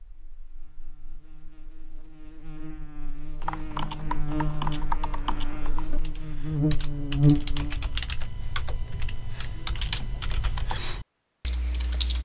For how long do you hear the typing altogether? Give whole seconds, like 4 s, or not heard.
9 s.